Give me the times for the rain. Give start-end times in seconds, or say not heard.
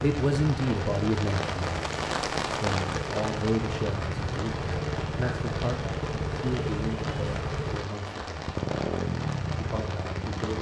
0.0-10.5.